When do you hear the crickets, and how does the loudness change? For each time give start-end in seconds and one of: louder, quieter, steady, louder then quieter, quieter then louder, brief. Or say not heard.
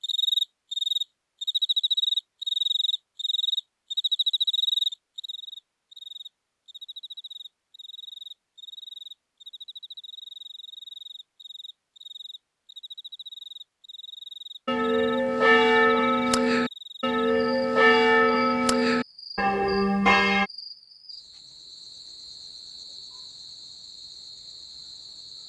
0.0-25.4 quieter.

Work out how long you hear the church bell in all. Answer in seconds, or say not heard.
6 s.